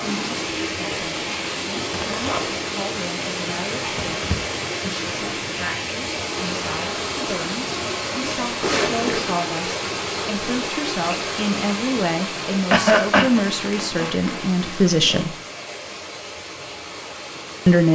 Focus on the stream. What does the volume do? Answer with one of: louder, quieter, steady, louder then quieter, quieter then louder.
quieter.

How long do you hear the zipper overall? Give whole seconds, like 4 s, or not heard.
3 s.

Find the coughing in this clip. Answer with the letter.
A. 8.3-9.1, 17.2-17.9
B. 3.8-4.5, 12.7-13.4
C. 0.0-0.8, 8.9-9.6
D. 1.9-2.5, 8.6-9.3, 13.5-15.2
B.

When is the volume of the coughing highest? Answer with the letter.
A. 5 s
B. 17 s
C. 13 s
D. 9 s
C.